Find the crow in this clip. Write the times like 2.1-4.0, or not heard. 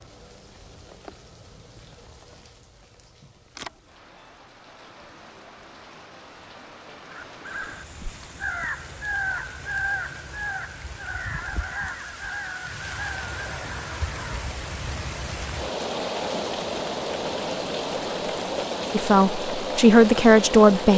7.1-14.5.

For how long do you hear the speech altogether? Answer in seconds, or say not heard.
2 s.